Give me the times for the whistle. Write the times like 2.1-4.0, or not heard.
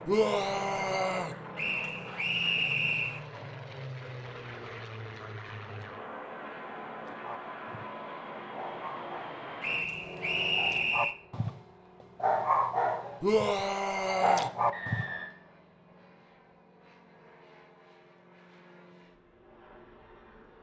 1.6-3.2, 9.6-11.2, 14.7-15.3.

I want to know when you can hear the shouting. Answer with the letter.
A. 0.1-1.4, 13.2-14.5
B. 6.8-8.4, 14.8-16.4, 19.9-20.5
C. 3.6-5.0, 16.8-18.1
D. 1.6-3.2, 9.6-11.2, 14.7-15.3
A.